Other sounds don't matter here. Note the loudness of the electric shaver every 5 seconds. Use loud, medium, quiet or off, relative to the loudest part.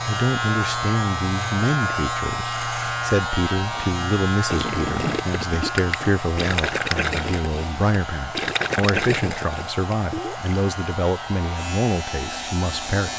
loud, medium, medium.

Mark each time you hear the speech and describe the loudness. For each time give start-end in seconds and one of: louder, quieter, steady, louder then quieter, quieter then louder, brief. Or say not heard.
0.1-13.1 steady.